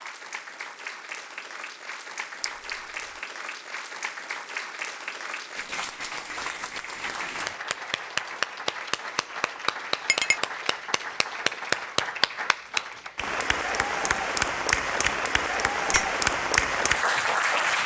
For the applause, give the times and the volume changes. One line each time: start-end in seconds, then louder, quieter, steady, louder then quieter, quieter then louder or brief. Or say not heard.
0.0-17.8 louder.